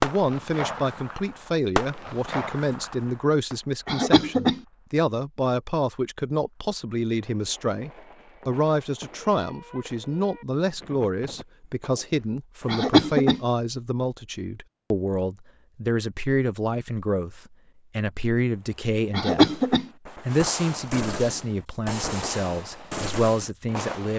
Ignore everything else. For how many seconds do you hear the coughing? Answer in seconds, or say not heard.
2 s.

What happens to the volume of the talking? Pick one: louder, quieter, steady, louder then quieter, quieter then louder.
steady.